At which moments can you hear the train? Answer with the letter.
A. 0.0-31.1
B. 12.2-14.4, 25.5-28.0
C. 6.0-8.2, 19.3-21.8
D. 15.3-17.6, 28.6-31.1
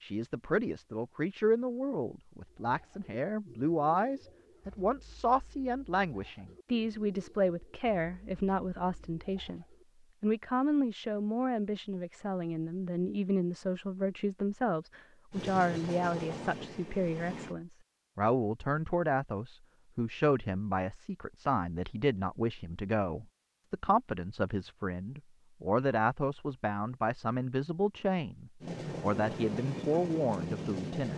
D.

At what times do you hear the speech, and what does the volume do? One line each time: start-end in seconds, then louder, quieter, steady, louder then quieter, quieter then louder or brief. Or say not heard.
0.0-31.1 steady.